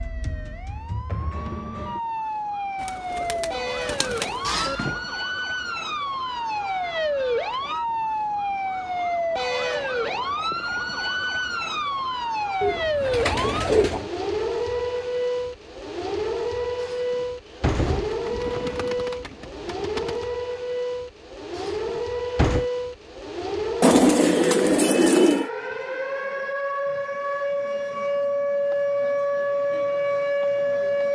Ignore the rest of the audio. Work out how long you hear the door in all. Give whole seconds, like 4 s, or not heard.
4 s.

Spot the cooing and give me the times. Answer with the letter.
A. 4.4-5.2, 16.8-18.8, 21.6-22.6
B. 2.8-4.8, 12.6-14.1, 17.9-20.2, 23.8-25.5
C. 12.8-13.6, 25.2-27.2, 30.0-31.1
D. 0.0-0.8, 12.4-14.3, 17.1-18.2
B.